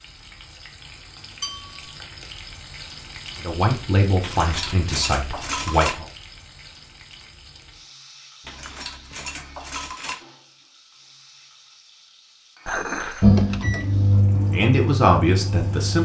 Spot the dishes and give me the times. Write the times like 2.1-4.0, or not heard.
1.4-1.9, 4.2-6.0, 8.4-10.2, 12.7-13.4.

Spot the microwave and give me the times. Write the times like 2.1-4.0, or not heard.
13.2-15.9.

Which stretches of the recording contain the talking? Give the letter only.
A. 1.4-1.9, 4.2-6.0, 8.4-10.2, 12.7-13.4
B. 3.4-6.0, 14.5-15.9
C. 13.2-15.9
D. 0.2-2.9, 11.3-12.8
B.